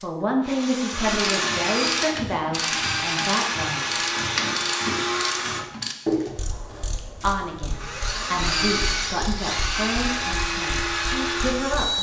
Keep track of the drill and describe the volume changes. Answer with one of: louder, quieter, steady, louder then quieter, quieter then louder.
steady.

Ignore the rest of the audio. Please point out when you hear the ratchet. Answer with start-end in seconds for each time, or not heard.
0.9-11.9.